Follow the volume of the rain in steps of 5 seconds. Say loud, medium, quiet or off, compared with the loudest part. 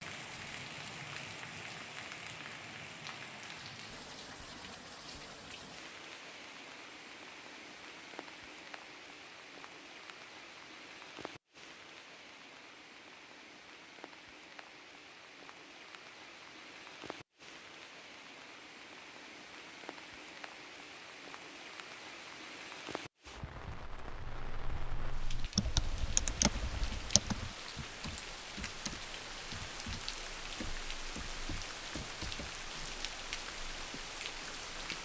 loud, medium, medium, medium, medium, loud, loud.